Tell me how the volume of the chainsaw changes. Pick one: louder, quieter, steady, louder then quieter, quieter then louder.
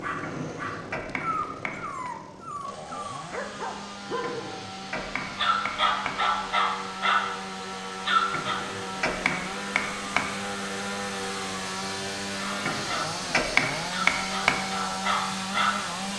louder.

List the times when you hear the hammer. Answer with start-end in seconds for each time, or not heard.
0.2-2.1, 4.2-6.2, 8.3-10.3, 12.7-14.7.